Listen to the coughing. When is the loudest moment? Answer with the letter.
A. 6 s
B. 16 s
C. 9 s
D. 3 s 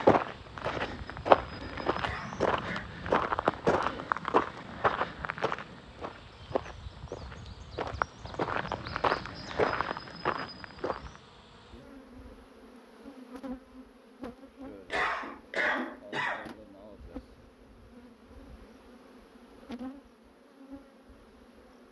B.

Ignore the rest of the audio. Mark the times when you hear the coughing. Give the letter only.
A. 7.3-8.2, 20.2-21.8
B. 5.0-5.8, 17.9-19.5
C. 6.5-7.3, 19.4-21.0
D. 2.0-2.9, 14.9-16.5
D.